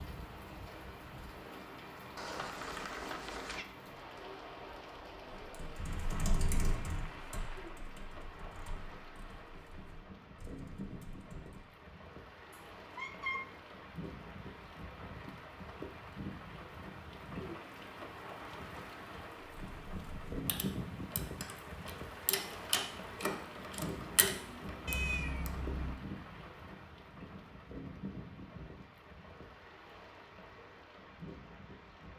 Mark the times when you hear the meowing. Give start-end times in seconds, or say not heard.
2.1-3.6, 12.5-13.6, 24.9-25.9.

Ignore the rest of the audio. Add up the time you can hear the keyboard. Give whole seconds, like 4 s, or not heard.
12 s.